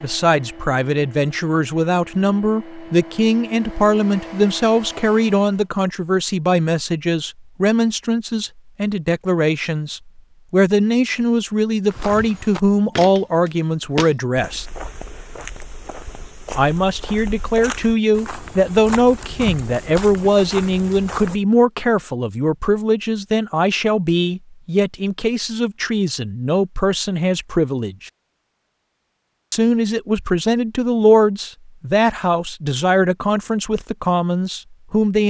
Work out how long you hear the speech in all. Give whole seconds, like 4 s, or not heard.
32 s.